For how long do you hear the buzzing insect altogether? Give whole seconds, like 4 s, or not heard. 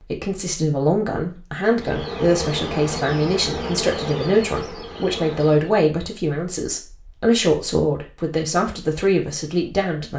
4 s.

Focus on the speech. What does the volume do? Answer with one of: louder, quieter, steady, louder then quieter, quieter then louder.
steady.